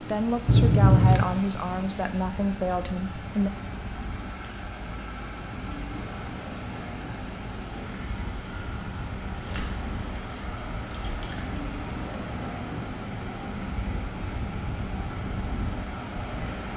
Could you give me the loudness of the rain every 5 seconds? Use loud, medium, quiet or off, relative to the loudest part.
medium, loud, loud, loud.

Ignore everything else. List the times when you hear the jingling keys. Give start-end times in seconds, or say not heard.
0.5-1.4, 9.4-11.4.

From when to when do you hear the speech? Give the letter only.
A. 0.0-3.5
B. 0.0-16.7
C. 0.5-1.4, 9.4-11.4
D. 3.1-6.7
A.